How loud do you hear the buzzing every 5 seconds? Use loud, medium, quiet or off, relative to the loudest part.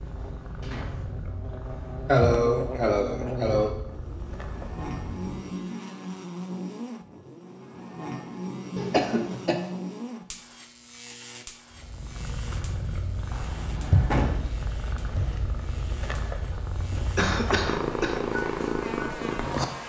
loud, loud, medium, medium.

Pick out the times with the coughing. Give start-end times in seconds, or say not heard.
2.0-3.8, 8.9-9.6, 17.1-18.2.